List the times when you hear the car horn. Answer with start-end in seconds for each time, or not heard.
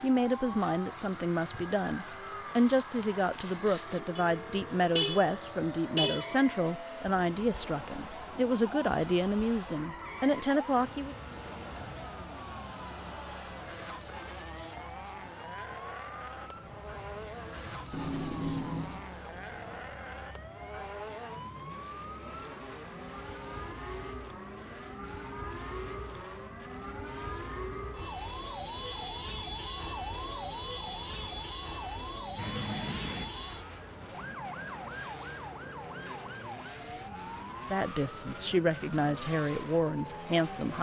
4.2-6.3, 17.9-19.1, 32.4-33.3.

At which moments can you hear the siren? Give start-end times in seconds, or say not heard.
0.0-40.5.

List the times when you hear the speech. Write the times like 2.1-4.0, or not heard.
0.0-11.2, 37.7-40.7.